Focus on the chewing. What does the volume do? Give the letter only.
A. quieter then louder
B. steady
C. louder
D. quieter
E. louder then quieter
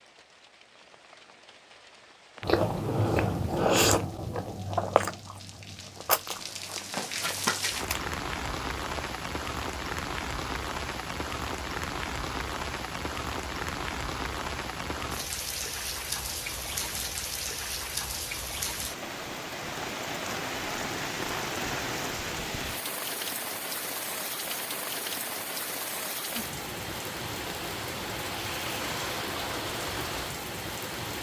D.